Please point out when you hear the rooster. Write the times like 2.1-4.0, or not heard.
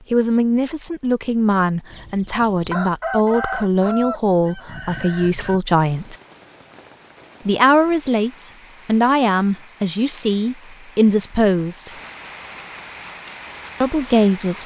1.9-5.6.